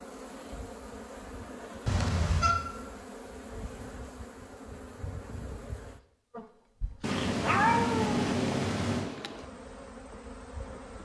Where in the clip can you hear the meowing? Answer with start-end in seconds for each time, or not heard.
1.9-2.5, 7.0-9.2.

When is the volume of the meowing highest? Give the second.
8 s.